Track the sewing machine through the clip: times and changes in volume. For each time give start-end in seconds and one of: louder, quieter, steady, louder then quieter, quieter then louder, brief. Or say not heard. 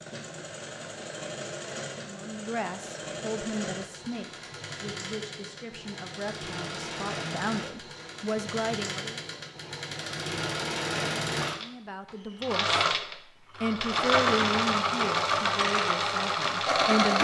0.0-17.1 louder.